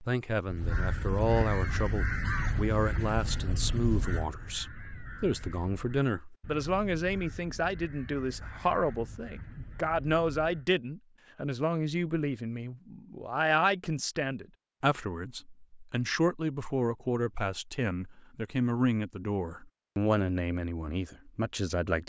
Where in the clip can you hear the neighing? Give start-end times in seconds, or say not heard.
not heard.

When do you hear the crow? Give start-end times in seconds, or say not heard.
0.5-10.7.